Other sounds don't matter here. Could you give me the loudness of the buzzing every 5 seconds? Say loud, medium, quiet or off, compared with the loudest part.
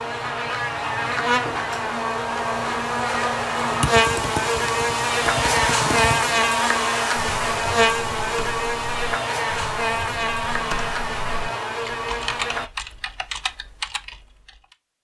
loud, loud, medium.